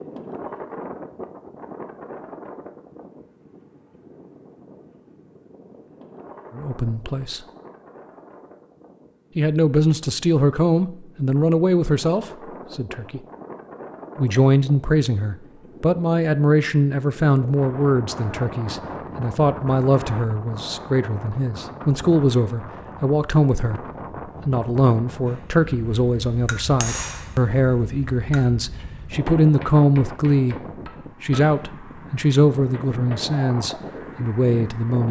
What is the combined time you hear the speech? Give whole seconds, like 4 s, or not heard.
25 s.